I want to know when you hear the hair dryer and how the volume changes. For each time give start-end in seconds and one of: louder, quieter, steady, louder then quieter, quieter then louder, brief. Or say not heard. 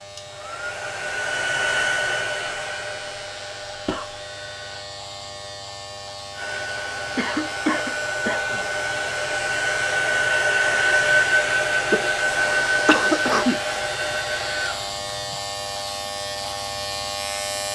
0.0-4.8 louder then quieter
6.3-15.3 louder then quieter.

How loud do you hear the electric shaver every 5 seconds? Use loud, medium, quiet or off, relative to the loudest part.
medium, medium, loud, loud.